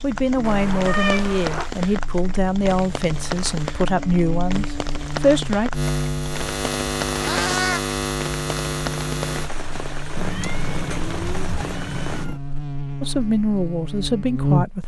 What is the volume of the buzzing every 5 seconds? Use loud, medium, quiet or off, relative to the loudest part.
medium, loud, loud.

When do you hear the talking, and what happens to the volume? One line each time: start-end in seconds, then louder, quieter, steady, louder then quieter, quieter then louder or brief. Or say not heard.
0.0-5.7 steady
13.0-14.8 brief.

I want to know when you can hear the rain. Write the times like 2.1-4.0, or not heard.
0.0-12.2.